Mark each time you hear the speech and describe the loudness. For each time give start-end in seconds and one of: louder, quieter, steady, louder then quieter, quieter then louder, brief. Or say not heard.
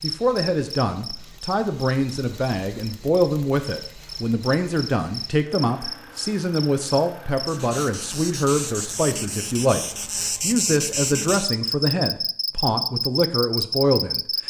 0.0-14.2 steady.